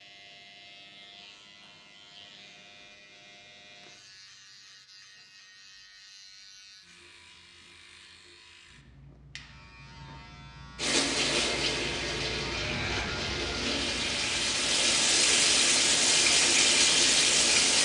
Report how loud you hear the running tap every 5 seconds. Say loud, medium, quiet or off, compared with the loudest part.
off, off, medium, loud.